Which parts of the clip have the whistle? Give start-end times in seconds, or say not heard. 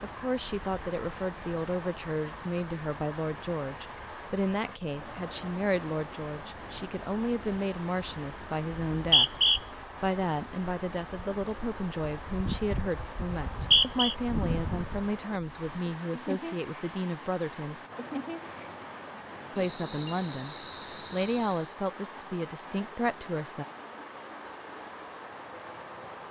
8.7-9.6, 13.3-14.2.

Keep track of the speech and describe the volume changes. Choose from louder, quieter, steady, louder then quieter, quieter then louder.
steady.